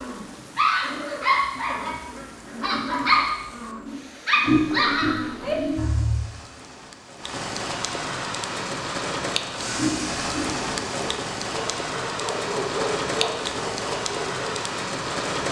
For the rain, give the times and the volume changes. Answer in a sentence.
You can hear the rain from 0.0 to 15.4 s, getting louder.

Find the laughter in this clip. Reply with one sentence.
You can hear the laughter from 4.5 to 5.9 s and from 9.8 to 10.6 s.